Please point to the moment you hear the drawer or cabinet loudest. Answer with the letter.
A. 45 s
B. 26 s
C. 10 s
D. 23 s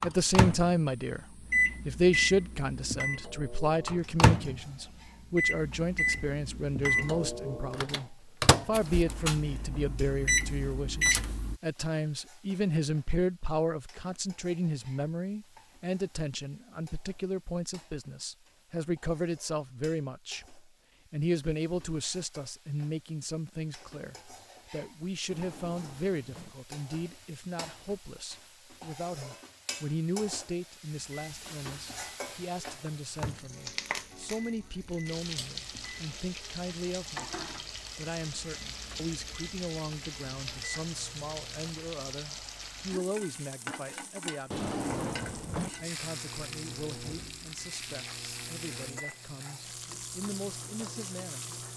A.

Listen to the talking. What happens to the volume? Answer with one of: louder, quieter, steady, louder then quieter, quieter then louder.
quieter.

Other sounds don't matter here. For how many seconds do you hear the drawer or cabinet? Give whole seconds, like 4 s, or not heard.
4 s.